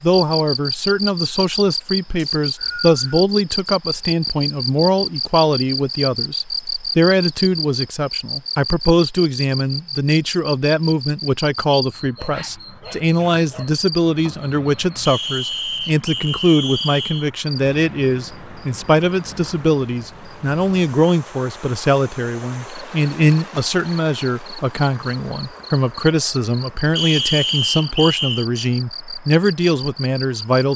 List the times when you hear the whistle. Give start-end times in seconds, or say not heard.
2.1-3.2, 15.1-17.3, 26.9-28.4.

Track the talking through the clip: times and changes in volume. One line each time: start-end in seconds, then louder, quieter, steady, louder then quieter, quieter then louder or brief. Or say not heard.
0.0-30.7 steady.